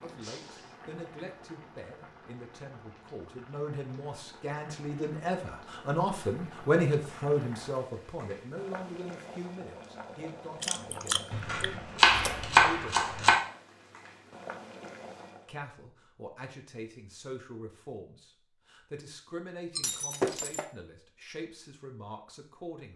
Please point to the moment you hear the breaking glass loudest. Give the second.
20 s.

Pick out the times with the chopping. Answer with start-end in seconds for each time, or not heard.
11.3-13.3.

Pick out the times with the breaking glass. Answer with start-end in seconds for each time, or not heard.
0.2-0.8, 19.8-20.6.